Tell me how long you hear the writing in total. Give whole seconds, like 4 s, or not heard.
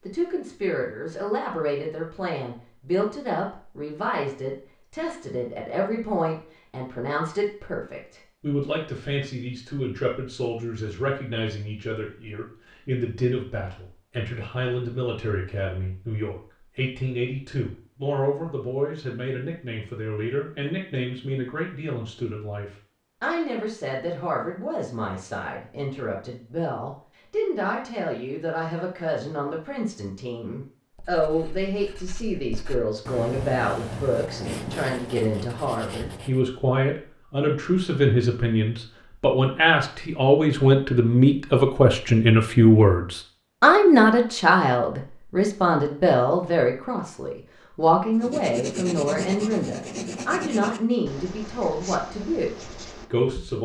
11 s.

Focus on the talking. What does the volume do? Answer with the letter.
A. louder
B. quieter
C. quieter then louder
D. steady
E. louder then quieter
A.